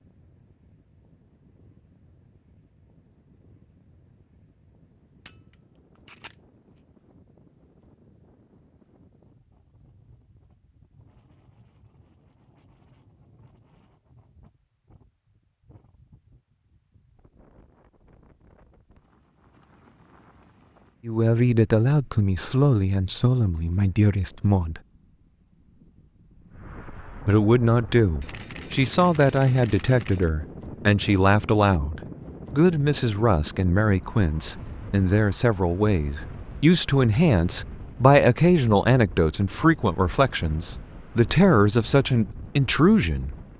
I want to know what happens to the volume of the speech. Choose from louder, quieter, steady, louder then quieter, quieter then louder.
steady.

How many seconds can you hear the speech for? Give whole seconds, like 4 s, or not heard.
20 s.